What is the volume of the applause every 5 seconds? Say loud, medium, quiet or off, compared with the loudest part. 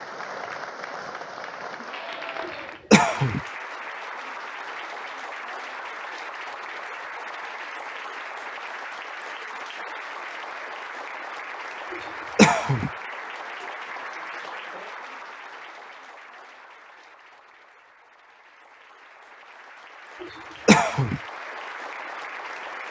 loud, loud, loud, medium, loud.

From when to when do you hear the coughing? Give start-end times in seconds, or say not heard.
2.5-3.4, 11.9-12.9, 20.2-21.2.